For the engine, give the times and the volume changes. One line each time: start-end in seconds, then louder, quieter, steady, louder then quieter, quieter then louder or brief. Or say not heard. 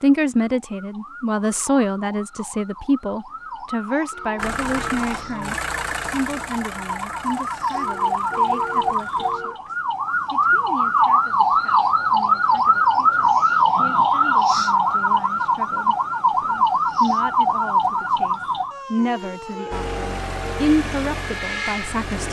4.3-9.3 quieter
19.7-22.2 brief.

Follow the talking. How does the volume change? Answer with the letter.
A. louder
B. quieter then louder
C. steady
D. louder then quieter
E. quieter
B.